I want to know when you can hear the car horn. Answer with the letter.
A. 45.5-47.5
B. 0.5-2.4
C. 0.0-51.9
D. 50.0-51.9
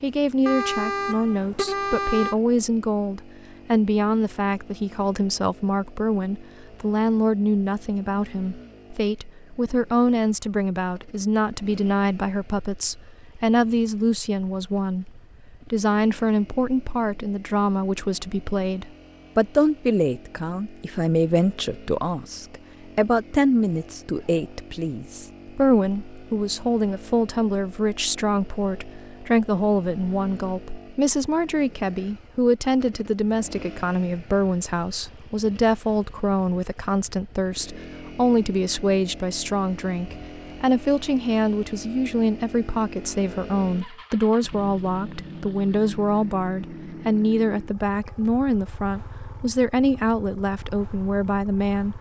B.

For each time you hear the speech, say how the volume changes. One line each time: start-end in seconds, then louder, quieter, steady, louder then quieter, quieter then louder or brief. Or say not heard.
0.0-51.9 steady.